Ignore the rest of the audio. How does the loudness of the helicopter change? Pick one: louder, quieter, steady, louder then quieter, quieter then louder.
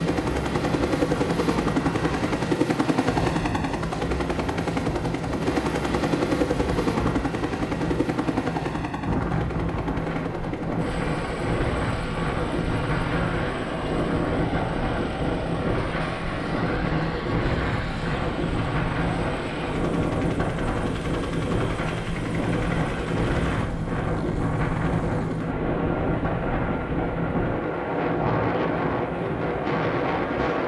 quieter.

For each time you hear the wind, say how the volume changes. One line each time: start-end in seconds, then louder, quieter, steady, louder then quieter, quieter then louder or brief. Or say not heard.
0.0-30.6 louder.